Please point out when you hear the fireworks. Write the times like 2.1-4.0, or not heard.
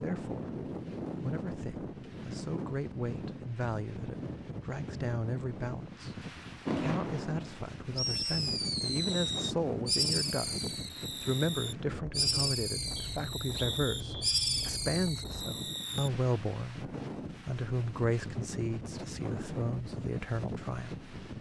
6.7-16.1.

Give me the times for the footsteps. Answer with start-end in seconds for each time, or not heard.
not heard.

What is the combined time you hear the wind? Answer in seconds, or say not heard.
21 s.